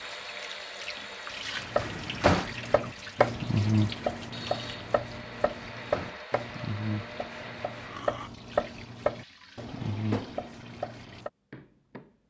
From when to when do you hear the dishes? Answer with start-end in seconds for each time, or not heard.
not heard.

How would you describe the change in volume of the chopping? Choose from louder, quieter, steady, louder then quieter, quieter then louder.
quieter.